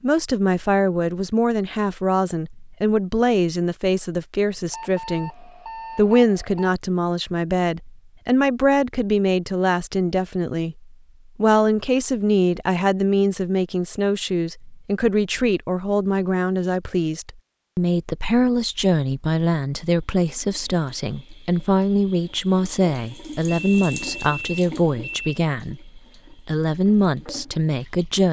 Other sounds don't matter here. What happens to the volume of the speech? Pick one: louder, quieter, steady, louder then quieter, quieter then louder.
steady.